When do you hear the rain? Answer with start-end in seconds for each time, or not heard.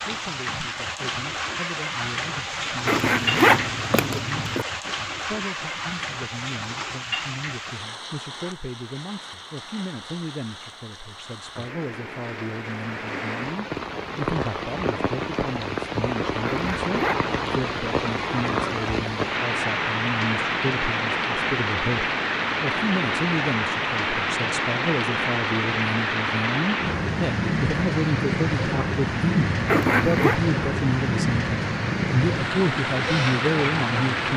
0.0-34.3.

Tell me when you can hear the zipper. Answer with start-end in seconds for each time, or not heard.
2.9-4.7, 16.4-17.4, 29.6-30.4.